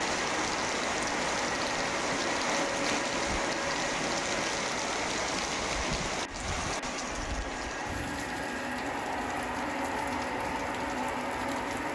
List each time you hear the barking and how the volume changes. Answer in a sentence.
The barking can't be heard in this clip.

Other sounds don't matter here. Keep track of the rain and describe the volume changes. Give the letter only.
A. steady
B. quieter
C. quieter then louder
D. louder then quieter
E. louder
B.